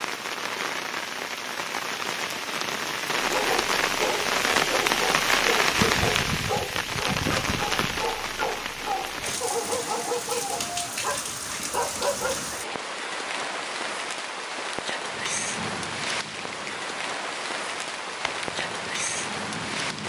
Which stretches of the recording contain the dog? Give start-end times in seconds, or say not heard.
3.2-12.5.